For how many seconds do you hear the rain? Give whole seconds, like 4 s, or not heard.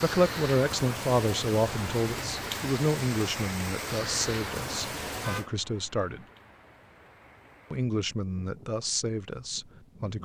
10 s.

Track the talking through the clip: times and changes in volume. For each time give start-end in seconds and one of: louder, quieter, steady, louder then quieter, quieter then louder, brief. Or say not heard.
0.0-6.2 quieter
7.7-10.1 brief.